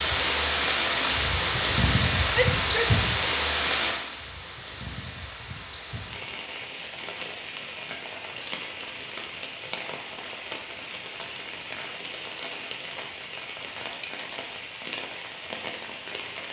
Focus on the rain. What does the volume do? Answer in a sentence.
The volume of the rain goes down.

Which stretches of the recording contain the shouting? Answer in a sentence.
You can hear the shouting from 2.3 to 2.9 s.